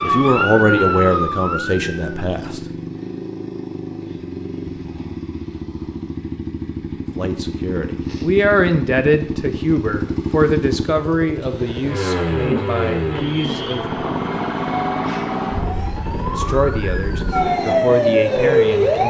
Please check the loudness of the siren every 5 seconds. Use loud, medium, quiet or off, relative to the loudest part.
loud, off, medium, loud.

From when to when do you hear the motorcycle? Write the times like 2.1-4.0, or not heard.
0.0-19.0.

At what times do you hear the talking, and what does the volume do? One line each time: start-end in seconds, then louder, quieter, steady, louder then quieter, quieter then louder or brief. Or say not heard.
0.0-2.6 brief
7.2-14.0 quieter
16.3-19.0 brief.